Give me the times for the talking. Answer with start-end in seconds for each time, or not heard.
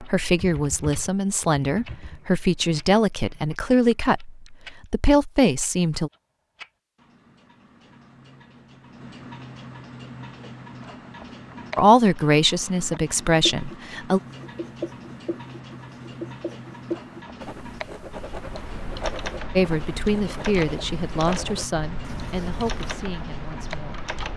0.0-6.1, 11.8-14.2, 19.6-24.0.